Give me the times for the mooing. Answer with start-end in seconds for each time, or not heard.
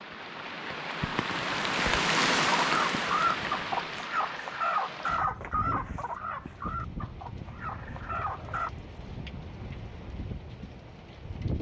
not heard.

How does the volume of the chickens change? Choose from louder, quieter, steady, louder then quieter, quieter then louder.
quieter.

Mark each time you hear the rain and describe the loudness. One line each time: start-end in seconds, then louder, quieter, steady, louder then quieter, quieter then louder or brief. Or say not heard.
0.0-11.5 quieter.